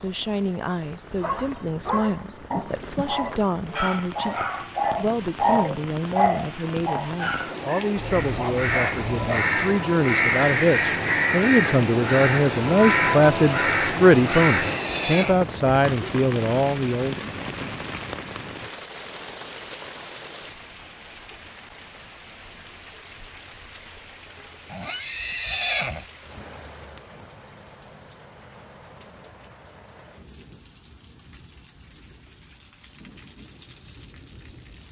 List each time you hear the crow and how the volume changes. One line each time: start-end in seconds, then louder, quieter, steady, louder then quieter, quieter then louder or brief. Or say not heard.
8.1-14.8 steady.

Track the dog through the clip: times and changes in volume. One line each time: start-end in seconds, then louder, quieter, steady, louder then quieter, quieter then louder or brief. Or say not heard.
1.1-9.4 louder then quieter.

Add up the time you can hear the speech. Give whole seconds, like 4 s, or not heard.
17 s.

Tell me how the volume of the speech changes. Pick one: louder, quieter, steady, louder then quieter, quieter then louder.
louder.